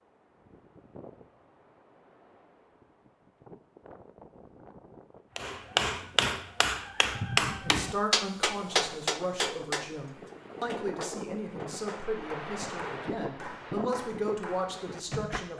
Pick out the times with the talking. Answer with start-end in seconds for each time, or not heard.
7.5-15.5.